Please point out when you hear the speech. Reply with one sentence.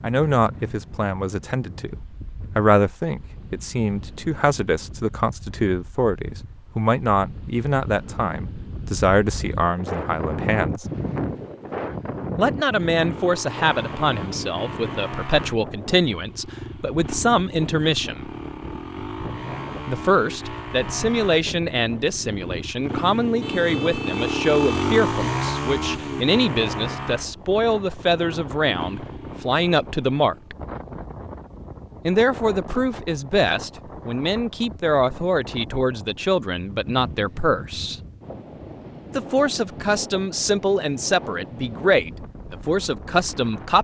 You can hear the speech from 0.0 to 1.9 s, from 2.5 to 10.8 s, from 12.3 to 18.3 s, from 19.9 to 30.6 s, from 32.0 to 38.0 s and from 39.1 to 43.8 s.